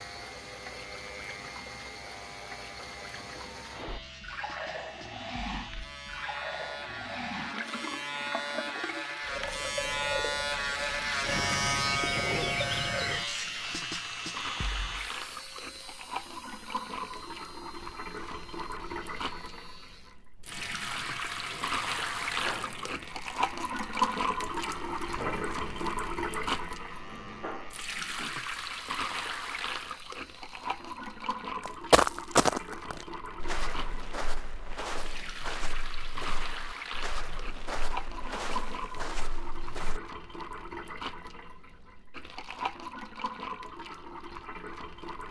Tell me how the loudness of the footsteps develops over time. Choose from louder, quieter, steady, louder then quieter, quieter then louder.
quieter.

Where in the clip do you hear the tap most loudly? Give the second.
24 s.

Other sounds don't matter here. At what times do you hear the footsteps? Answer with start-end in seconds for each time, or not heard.
31.6-40.0.